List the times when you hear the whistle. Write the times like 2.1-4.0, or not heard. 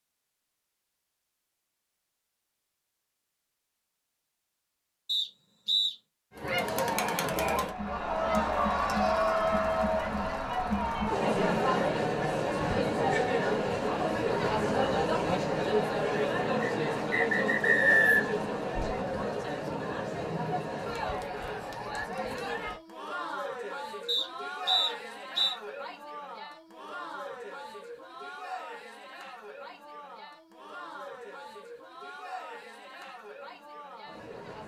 5.0-6.0, 16.6-18.4, 24.1-25.6.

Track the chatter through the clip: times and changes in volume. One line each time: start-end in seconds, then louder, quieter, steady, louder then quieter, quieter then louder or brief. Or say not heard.
6.3-34.6 quieter.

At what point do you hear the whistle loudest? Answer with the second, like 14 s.
18 s.